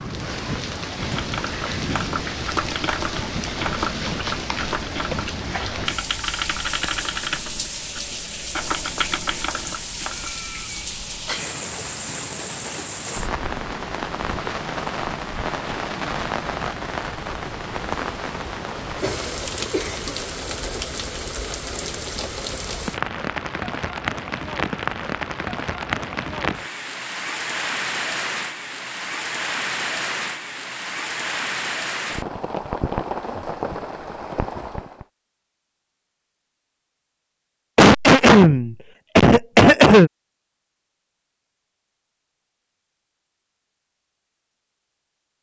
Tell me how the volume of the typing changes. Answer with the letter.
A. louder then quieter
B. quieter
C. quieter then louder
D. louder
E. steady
E.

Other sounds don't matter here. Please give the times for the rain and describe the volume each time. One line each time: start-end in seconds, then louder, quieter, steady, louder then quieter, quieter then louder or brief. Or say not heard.
0.0-35.0 steady.